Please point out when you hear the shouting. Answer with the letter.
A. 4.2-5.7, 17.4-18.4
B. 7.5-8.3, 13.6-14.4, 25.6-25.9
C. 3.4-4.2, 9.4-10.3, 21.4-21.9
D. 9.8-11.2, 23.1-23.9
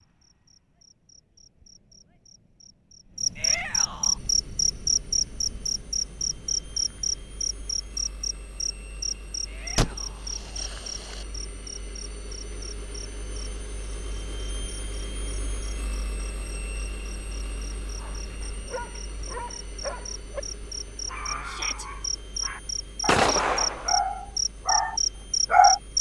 C.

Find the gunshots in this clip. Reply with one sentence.
The gunshots can be heard from 9.8 to 11.2 s and from 23.1 to 23.9 s.